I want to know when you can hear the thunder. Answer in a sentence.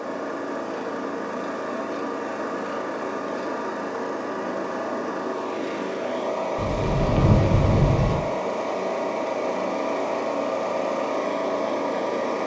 The thunder can be heard from 6.5 to 8.2 s.